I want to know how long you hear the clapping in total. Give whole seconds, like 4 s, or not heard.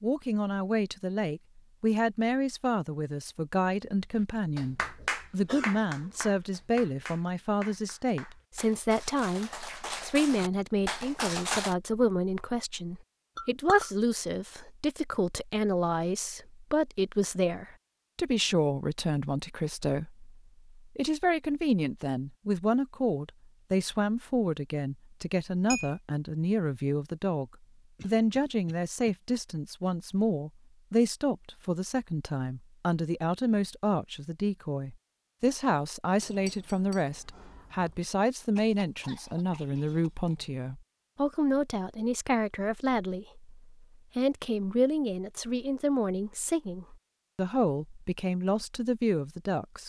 7 s.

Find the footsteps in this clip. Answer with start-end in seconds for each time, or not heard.
not heard.